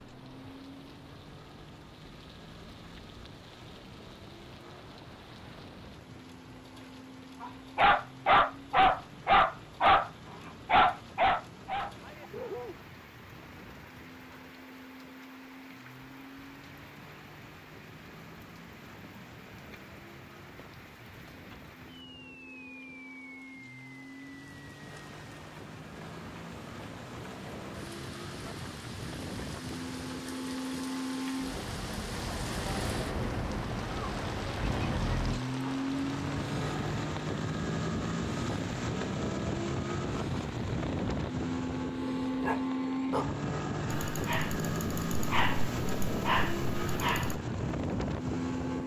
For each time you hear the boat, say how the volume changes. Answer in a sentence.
The boat can be heard from 0.0 to 48.8 s, getting louder.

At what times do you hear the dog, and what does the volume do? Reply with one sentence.
You can hear the dog from 7.4 to 12.8 s, getting quieter; and from 42.4 to 47.4 s, getting quieter then louder.